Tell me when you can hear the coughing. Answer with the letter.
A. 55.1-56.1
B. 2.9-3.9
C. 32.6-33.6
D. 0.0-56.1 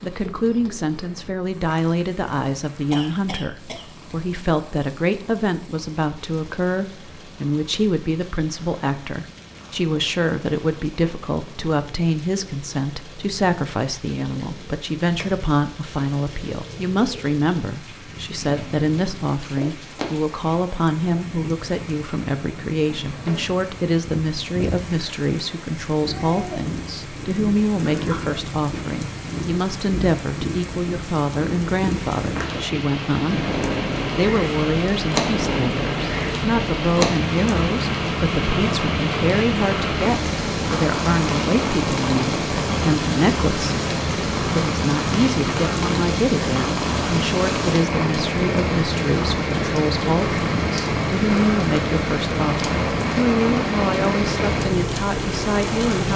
B.